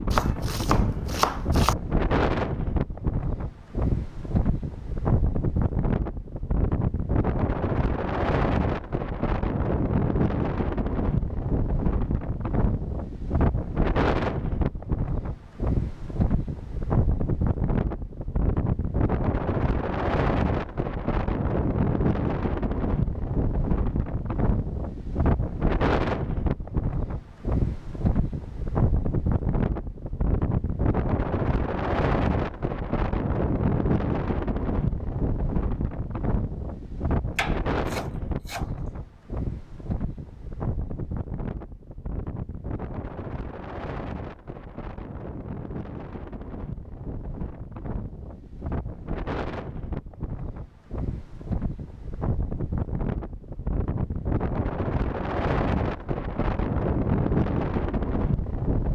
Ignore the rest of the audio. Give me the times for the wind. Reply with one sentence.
You can hear the wind from 0.0 to 58.9 s.